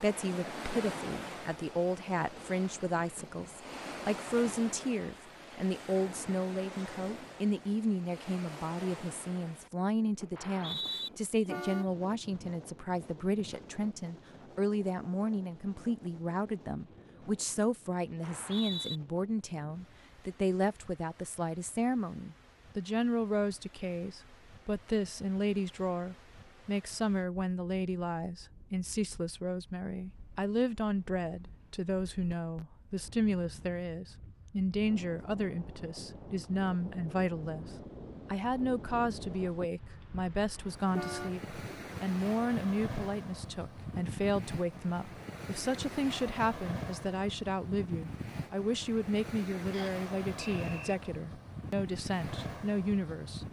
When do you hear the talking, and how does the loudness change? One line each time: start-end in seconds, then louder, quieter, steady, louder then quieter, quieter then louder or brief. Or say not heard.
0.0-53.4 steady.